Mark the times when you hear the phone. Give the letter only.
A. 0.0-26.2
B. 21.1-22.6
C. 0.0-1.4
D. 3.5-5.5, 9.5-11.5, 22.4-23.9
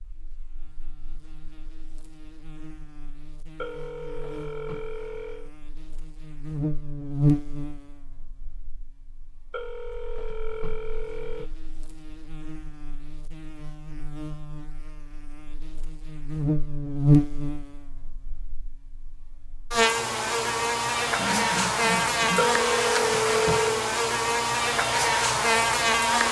D.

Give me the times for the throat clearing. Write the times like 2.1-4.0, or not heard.
21.1-22.6.